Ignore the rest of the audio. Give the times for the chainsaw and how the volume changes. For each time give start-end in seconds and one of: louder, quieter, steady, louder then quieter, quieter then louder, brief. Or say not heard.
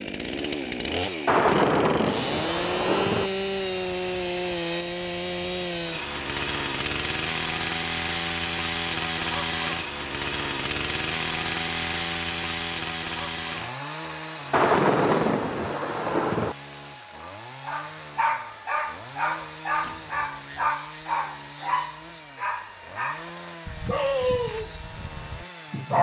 0.0-25.9 quieter.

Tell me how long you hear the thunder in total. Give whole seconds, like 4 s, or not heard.
4 s.